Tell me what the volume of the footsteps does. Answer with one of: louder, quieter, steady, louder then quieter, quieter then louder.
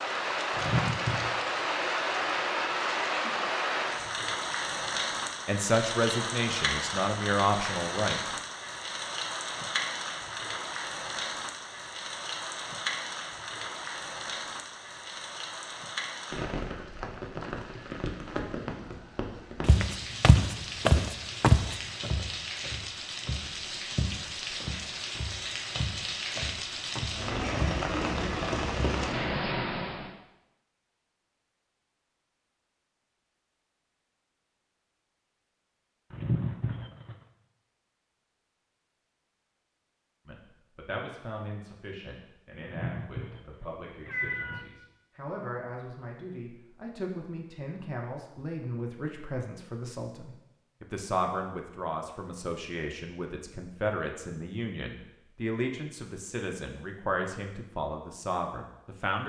quieter.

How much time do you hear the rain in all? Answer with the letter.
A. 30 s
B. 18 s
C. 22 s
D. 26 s
A.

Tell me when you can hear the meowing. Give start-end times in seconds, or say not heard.
0.6-1.3, 36.1-37.1, 42.6-44.6.